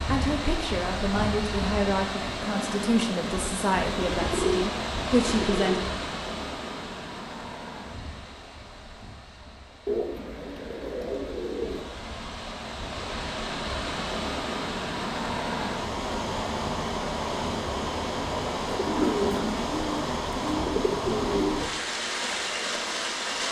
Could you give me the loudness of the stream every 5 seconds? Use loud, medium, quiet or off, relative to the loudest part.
loud, medium, medium, loud, loud.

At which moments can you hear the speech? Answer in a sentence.
The speech can be heard from 0.1 to 5.8 s.